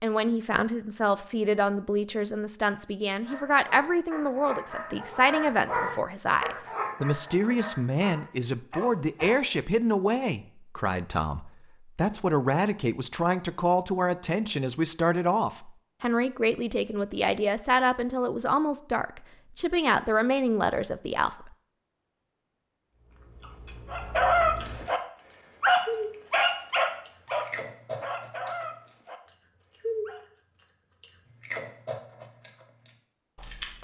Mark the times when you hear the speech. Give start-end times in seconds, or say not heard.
0.0-21.5.